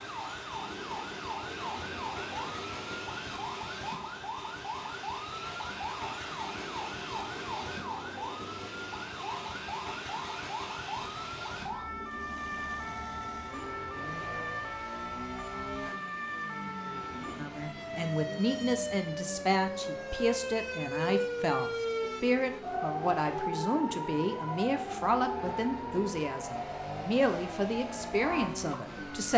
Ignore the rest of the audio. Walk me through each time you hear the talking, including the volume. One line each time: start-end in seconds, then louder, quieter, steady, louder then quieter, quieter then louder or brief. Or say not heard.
17.4-29.3 steady.